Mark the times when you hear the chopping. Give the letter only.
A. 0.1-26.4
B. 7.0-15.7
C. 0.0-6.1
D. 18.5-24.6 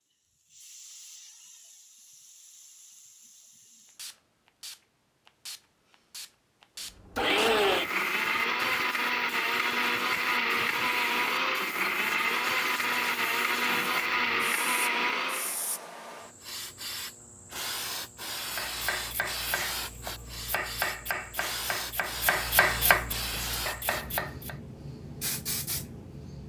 D.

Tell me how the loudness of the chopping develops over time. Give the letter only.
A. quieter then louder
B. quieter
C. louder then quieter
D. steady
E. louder
C.